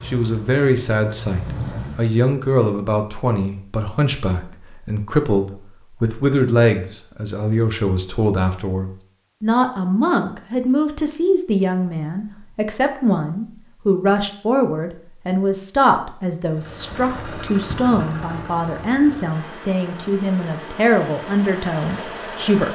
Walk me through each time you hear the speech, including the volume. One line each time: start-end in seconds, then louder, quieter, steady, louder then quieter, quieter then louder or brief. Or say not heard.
0.1-22.7 steady.